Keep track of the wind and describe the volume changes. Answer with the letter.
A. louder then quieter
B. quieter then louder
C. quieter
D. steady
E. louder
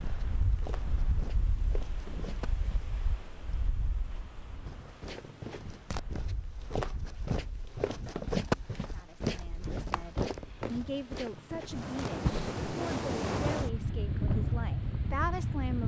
B.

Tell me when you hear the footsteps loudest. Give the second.
8 s.